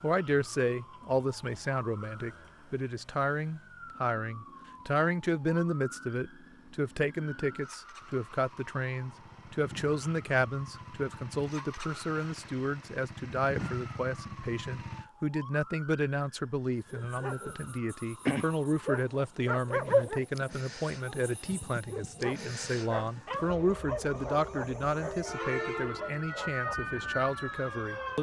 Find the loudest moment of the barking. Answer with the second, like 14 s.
20 s.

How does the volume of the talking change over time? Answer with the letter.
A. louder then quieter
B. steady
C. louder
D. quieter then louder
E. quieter
B.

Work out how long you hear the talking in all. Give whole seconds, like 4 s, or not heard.
28 s.